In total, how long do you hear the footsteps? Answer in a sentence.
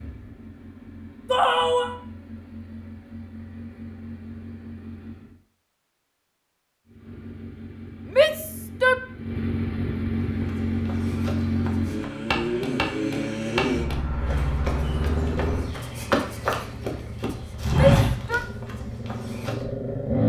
You can hear the footsteps for 9 seconds altogether.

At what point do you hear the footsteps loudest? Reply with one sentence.
The loudest moment of the footsteps is at 18 seconds.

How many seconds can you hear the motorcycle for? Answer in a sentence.
You can hear the motorcycle for 19 seconds altogether.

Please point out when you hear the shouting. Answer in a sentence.
The shouting can be heard from 1.3 to 1.9 s, from 8.2 to 8.9 s and from 17.7 to 18.4 s.